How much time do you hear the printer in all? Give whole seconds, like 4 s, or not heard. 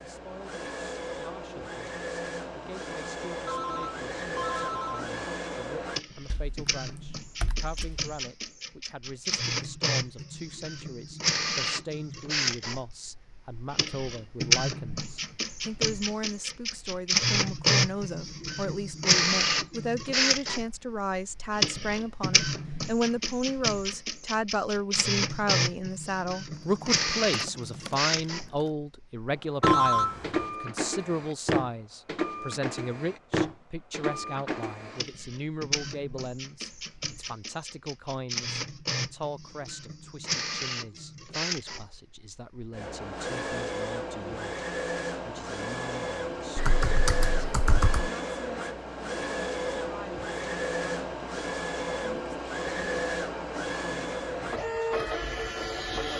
56 s.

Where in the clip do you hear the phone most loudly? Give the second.
30 s.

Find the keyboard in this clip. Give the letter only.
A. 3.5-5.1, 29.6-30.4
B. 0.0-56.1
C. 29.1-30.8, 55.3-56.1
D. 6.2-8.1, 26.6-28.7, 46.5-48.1
D.